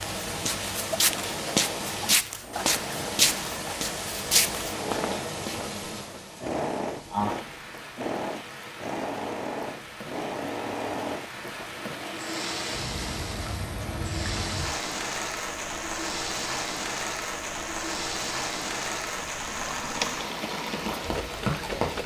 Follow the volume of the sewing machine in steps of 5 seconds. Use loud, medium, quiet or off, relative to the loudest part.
medium, loud, loud, loud, loud.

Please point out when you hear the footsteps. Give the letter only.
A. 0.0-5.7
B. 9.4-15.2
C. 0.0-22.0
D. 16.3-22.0
A.